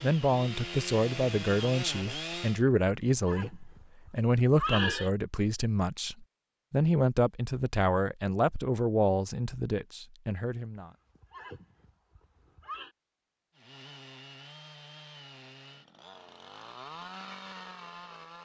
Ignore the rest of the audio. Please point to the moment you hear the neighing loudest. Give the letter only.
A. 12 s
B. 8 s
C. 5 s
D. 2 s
C.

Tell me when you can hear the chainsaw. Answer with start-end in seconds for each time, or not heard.
0.0-2.6, 13.6-18.4.